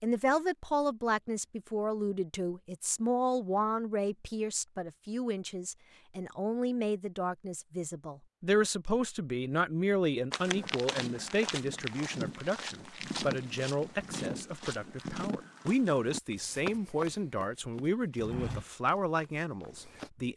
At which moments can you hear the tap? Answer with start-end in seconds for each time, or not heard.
not heard.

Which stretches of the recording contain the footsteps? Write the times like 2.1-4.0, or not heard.
10.3-20.1.